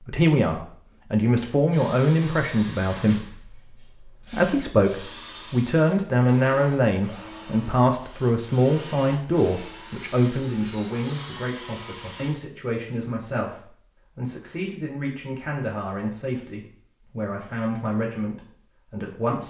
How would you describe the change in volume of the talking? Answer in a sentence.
The loudness of the talking goes down.